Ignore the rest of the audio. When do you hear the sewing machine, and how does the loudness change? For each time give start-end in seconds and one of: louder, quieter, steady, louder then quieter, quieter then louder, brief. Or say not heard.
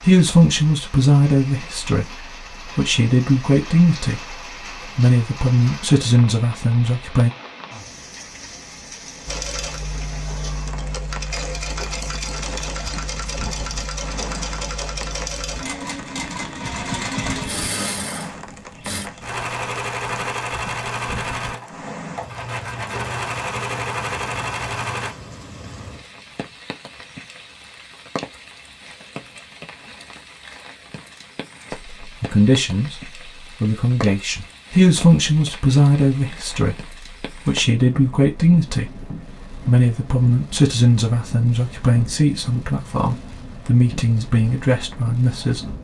9.2-25.1 steady.